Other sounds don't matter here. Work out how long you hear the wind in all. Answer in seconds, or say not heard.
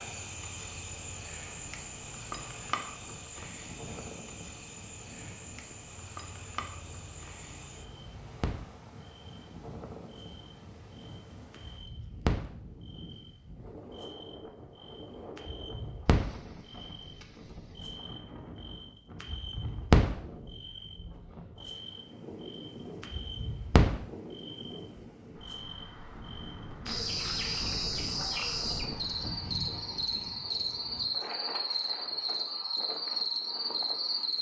34 s.